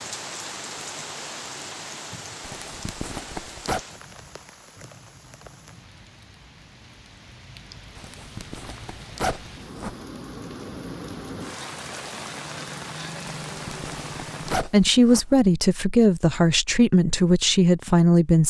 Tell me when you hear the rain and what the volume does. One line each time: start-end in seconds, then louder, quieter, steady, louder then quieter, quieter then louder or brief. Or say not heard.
0.0-14.6 quieter then louder.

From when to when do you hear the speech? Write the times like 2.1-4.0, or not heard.
14.5-18.4.